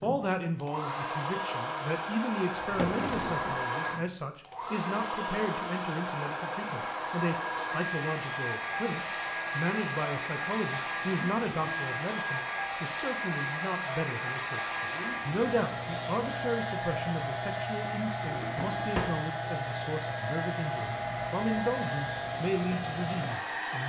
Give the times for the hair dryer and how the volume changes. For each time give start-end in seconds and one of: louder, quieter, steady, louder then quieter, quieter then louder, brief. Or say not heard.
0.0-23.8 steady.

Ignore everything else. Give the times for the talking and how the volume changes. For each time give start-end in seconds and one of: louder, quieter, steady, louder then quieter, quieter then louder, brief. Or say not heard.
0.0-23.8 steady.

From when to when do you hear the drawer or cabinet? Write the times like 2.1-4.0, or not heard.
2.5-3.6, 18.2-19.2.